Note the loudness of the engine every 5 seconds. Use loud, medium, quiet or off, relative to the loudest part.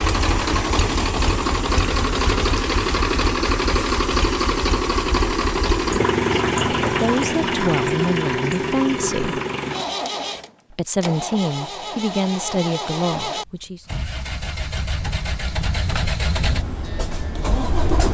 loud, loud, medium, medium.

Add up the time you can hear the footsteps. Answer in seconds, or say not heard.
not heard.